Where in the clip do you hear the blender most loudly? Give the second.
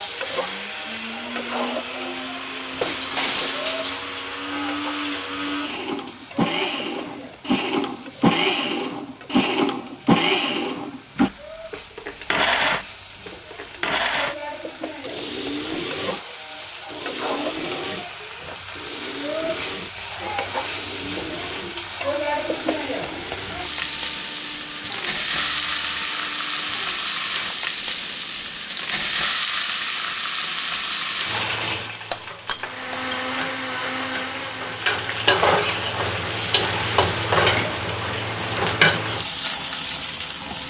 10 s.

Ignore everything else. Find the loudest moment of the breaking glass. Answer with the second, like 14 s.
3 s.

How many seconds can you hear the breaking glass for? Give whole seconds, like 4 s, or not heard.
2 s.